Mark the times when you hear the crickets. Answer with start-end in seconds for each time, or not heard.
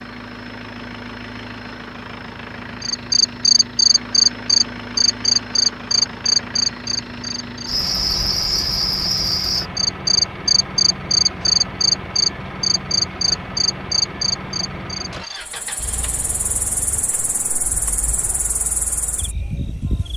2.8-20.1.